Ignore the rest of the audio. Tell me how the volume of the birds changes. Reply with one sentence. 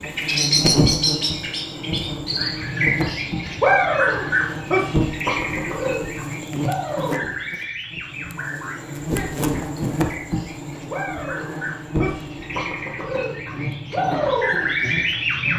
The loudness of the birds goes down, then up.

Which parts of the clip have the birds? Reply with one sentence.
The birds can be heard from 0.0 to 15.5 s.